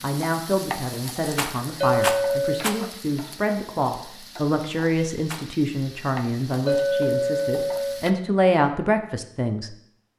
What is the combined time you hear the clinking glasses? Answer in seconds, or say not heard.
2 s.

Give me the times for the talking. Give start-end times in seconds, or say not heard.
0.0-9.7.